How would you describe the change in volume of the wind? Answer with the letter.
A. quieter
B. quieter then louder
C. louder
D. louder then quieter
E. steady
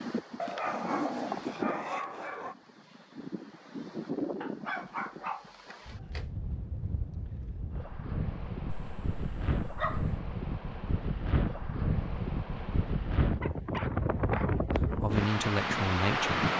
C.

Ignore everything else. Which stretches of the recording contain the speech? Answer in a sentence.
You can hear the speech from 14.7 to 16.4 s.